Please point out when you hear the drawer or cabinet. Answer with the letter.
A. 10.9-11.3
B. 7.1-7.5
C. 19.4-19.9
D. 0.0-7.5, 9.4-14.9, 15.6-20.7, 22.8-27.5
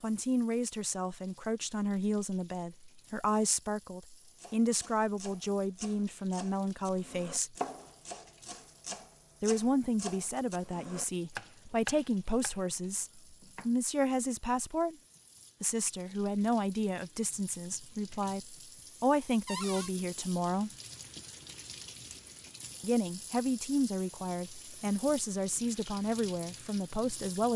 C.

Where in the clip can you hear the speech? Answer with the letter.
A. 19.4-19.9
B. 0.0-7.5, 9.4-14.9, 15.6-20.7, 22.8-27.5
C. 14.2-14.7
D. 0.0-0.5
B.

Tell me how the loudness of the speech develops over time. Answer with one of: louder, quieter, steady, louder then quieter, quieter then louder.
steady.